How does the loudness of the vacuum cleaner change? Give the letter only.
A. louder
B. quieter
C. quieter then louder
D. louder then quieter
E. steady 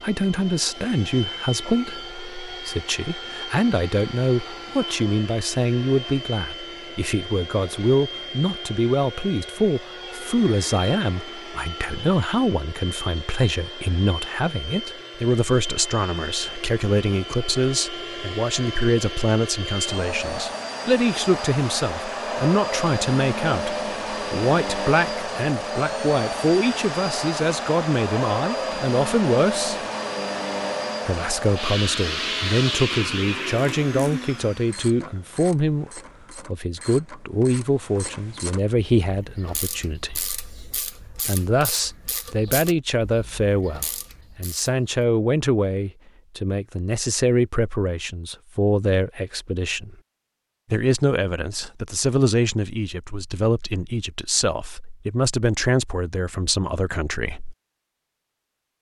A.